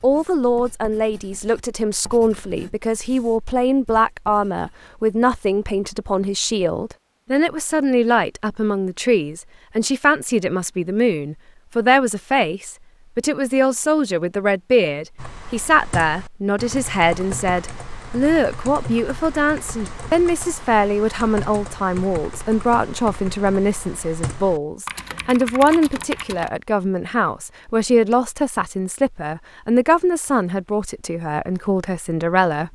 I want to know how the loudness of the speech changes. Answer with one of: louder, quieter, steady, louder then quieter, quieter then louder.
steady.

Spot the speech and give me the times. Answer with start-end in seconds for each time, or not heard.
0.0-32.6.